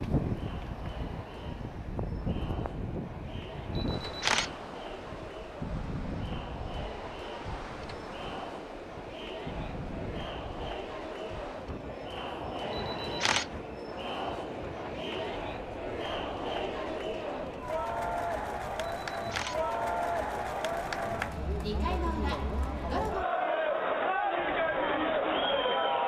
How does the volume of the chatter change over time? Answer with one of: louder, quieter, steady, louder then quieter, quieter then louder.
louder.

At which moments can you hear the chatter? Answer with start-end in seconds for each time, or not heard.
0.2-26.0.